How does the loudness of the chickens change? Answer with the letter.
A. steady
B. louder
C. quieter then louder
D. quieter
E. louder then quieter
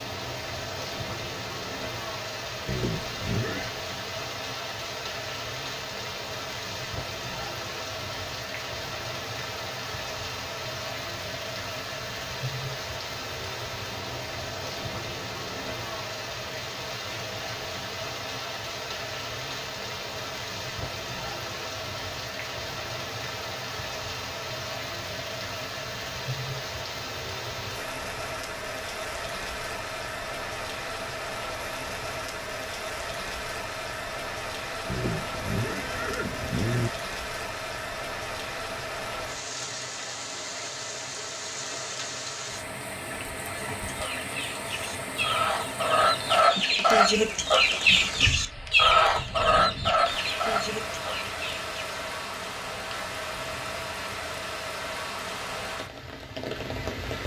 E.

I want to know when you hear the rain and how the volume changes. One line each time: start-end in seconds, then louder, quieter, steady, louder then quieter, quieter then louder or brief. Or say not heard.
0.0-57.2 steady.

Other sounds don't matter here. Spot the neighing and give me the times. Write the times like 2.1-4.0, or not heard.
2.6-3.7, 34.9-36.9.